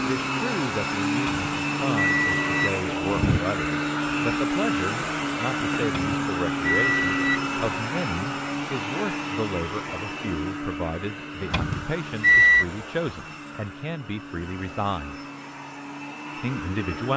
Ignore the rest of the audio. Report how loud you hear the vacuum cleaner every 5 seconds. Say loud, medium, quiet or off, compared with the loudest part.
loud, loud, medium, medium.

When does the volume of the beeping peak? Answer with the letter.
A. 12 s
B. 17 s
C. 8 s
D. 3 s
A.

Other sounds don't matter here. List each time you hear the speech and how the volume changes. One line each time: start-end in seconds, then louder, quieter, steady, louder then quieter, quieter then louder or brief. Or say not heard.
0.1-15.2 steady
16.4-17.1 brief.